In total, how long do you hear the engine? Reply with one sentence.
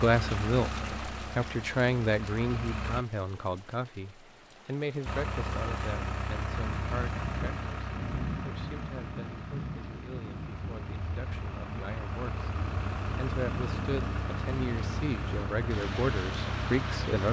The engine can be heard for 15 seconds in total.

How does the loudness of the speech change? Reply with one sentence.
The volume of the speech goes down, then up.